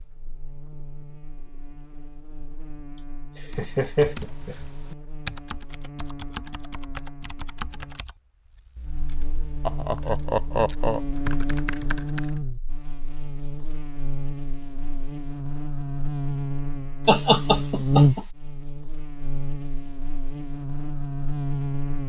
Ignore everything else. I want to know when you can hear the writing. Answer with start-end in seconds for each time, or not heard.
not heard.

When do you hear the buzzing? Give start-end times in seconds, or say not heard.
0.0-22.0.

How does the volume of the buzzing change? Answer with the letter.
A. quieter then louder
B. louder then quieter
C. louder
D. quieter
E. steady
C.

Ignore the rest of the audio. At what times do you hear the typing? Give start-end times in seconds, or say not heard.
3.5-12.4.